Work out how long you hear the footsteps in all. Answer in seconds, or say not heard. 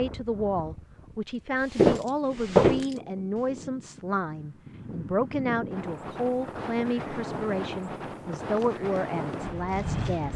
3 s.